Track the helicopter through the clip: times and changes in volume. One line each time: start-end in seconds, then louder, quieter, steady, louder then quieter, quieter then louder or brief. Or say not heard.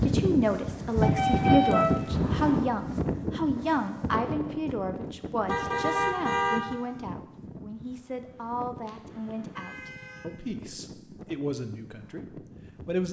not heard.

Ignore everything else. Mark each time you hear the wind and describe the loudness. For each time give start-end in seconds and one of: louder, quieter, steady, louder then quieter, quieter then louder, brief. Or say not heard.
0.0-13.0 quieter.